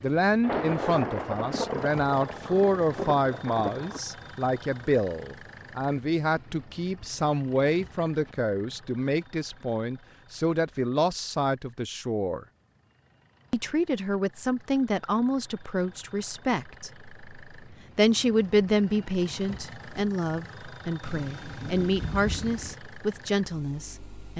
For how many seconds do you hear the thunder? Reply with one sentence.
You can hear the thunder for 5 seconds altogether.